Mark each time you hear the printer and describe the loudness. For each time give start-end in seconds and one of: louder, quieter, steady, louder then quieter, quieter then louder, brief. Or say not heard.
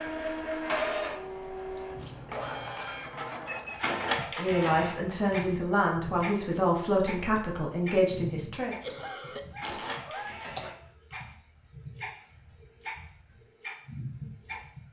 0.0-14.8 quieter.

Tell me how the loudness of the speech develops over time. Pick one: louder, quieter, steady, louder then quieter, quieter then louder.
steady.